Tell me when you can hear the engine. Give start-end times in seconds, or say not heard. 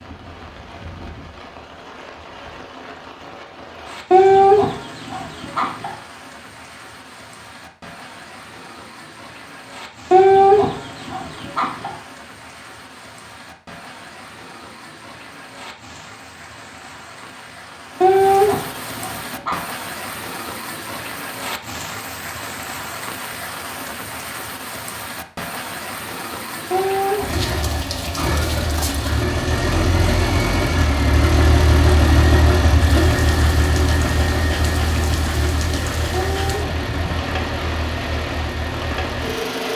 27.2-39.7.